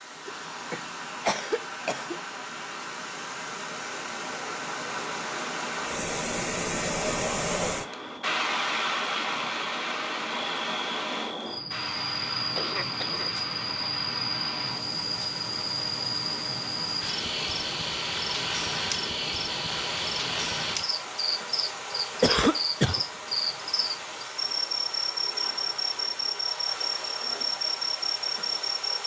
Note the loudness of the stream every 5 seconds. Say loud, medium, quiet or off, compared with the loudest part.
medium, loud, medium, medium, medium, medium.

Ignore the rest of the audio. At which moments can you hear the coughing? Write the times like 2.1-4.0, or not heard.
0.2-2.2, 12.6-13.4, 22.2-23.0.